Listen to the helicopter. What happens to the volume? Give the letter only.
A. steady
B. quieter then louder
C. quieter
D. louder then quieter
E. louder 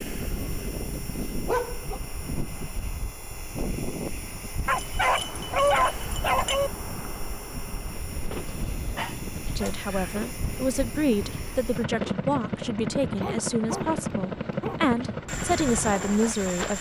E.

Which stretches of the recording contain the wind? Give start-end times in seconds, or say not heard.
0.0-16.7.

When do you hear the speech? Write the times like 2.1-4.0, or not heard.
9.6-16.7.